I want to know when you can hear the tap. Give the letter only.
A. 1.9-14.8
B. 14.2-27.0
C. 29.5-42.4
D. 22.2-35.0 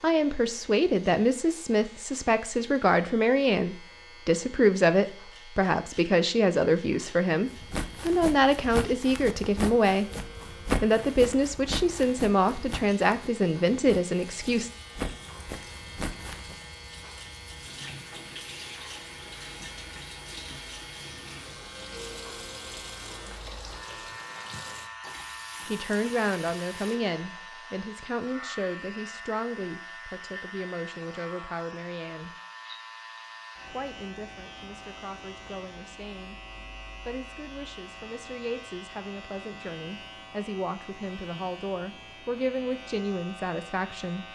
B.